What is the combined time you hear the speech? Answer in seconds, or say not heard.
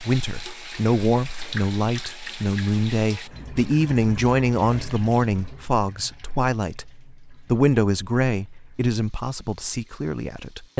11 s.